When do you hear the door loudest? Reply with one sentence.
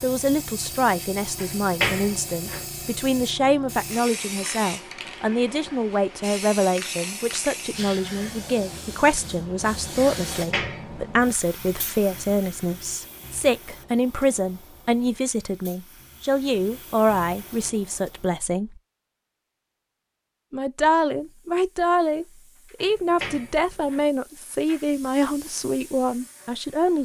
The loudest moment of the door is at 2 seconds.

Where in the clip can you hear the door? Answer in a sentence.
You can hear the door from 1.4 to 2.6 s, from 10.3 to 11.1 s and from 22.8 to 24.1 s.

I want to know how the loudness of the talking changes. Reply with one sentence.
The volume of the talking stays about the same.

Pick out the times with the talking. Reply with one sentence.
You can hear the talking from 0.0 to 18.8 s and from 20.5 to 27.0 s.